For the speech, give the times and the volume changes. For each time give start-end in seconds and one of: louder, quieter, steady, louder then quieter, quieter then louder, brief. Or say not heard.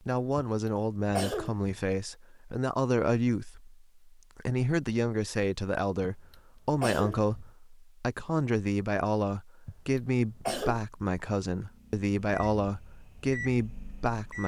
0.0-14.4 steady.